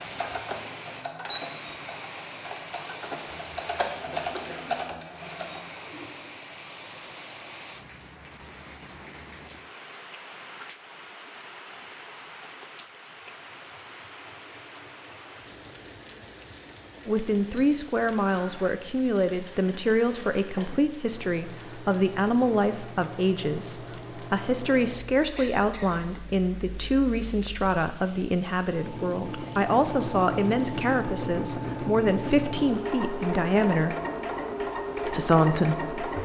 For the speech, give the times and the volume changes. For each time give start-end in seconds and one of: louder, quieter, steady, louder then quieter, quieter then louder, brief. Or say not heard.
17.1-34.0 steady
35.0-36.0 brief.